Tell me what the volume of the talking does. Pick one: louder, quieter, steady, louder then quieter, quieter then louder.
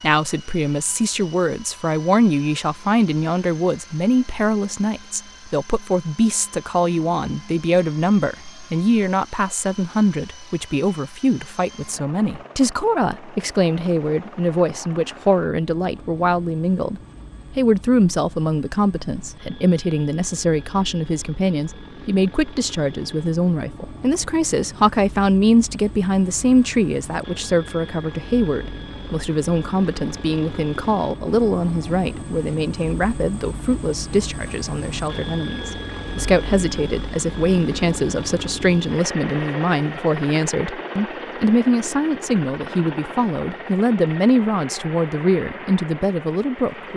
steady.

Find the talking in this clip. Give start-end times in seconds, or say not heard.
0.0-46.9.